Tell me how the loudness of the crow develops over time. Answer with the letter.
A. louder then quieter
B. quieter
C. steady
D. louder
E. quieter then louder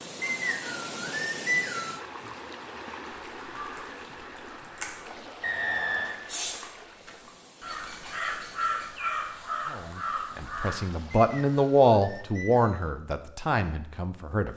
D.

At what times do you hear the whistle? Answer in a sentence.
You can hear the whistle from 0.2 to 2.0 s, from 5.4 to 6.2 s and from 11.1 to 12.9 s.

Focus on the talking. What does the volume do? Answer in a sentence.
The loudness of the talking goes up, then down.